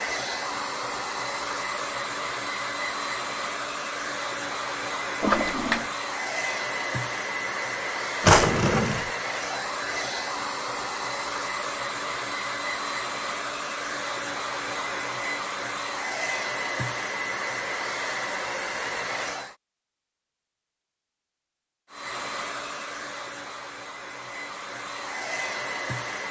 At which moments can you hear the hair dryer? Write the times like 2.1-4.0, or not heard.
0.0-19.6, 21.9-26.2.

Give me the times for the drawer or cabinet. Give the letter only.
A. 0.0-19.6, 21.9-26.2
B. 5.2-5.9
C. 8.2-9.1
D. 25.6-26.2
C.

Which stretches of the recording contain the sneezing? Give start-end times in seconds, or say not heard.
not heard.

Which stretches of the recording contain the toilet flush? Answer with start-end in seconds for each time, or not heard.
5.2-5.9.